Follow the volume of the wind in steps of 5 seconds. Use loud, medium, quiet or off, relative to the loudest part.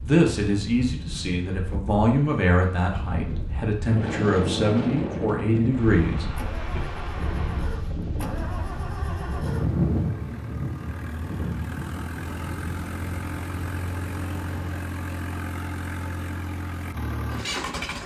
loud, loud, medium, off.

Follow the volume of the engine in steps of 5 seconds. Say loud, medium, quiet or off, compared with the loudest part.
off, medium, loud, loud.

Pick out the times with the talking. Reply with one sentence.
You can hear the talking from 0.0 to 6.8 s.